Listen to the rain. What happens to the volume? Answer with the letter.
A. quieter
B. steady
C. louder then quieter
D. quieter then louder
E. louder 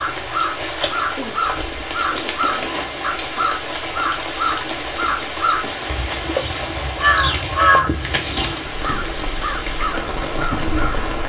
B.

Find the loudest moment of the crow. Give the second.
8 s.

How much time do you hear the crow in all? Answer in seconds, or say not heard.
11 s.